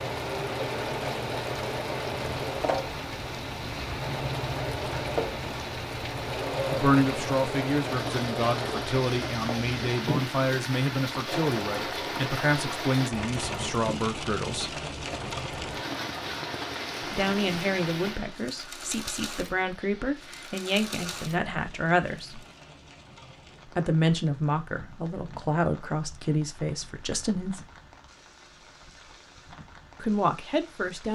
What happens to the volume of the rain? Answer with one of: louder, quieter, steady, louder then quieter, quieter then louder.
quieter.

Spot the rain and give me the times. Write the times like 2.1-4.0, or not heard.
0.0-31.0.